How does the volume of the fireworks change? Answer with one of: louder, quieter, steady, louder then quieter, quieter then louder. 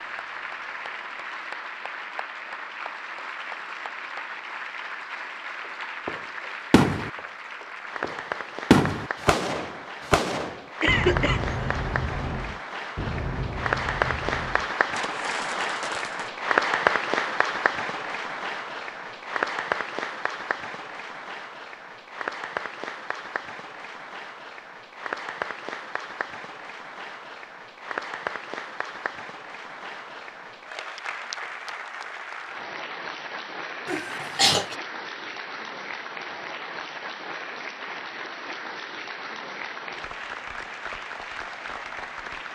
quieter.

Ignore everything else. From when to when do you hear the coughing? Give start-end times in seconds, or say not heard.
10.8-11.6, 33.9-34.8.